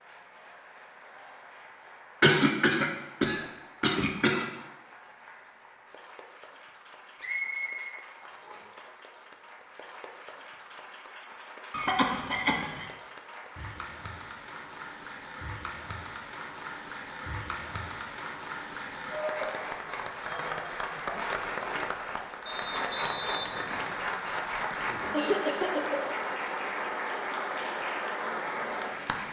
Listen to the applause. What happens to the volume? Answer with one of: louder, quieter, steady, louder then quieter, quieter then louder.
louder.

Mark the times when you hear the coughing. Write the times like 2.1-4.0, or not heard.
2.2-4.5, 11.7-12.8, 24.6-26.0.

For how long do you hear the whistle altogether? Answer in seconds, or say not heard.
3 s.